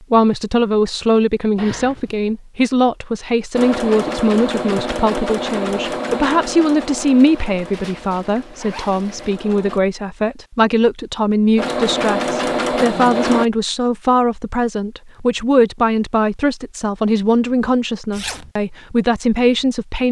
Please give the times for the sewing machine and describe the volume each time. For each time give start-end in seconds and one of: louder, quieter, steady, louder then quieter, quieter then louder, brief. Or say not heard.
3.5-9.8 quieter
11.6-13.4 brief.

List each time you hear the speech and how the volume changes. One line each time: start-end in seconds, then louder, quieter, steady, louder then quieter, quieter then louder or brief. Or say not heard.
0.1-20.0 steady.